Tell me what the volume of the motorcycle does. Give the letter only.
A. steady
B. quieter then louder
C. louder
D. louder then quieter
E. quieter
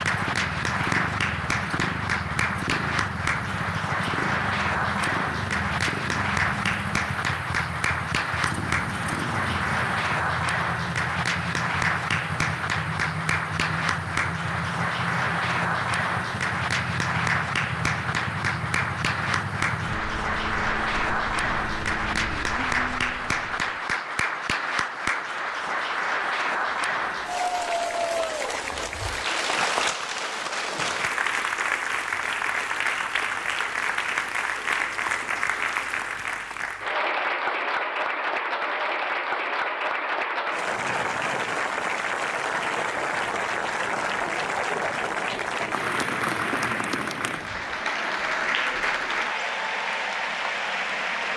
A.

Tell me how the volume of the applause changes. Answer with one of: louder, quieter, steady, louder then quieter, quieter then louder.
steady.